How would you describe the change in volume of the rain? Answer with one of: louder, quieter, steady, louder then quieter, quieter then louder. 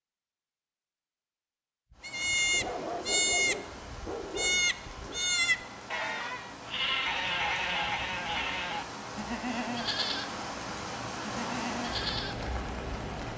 louder.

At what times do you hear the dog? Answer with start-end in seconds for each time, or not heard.
2.5-5.2.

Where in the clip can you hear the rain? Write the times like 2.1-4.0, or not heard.
1.9-13.3.